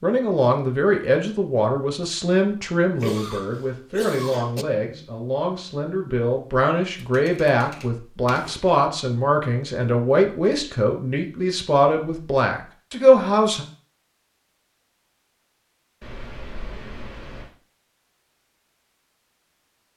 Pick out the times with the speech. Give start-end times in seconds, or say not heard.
0.0-13.7.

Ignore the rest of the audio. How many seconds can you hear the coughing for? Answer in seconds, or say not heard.
2 s.